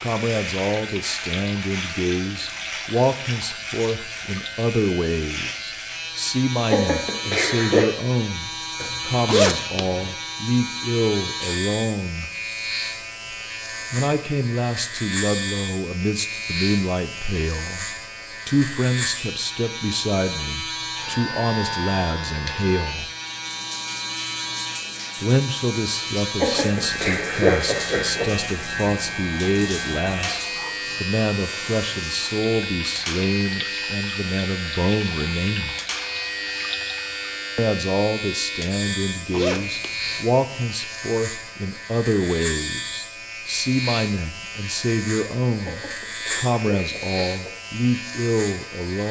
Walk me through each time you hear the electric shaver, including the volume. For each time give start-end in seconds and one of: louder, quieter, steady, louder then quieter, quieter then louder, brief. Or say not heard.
0.0-49.0 steady.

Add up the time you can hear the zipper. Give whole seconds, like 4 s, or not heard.
3 s.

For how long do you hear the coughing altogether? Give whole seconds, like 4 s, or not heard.
5 s.